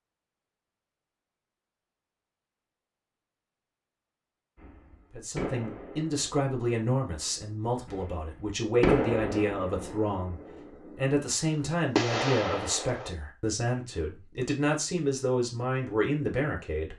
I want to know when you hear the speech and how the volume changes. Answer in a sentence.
You can hear the speech from 5.1 to 16.9 s, at a steady volume.